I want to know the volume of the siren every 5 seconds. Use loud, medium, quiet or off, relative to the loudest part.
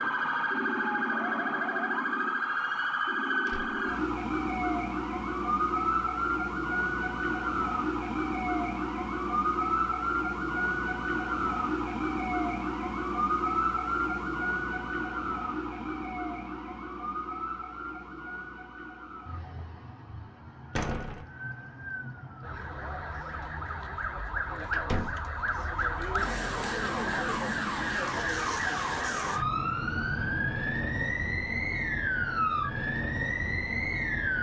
loud, loud, loud, medium, medium, loud, loud.